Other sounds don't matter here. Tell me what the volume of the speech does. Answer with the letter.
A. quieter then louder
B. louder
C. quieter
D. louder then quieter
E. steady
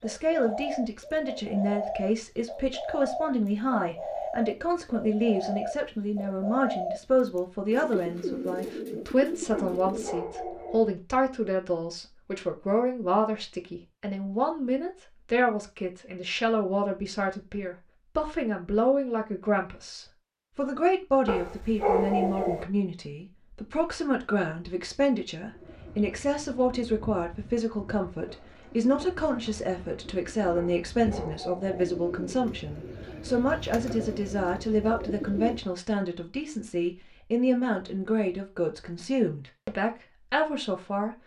E.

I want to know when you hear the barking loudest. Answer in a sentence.
The loudest moment of the barking is at 22 seconds.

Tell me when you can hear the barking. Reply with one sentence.
The barking can be heard from 9.5 to 10.8 s, from 21.2 to 22.6 s and from 30.6 to 31.9 s.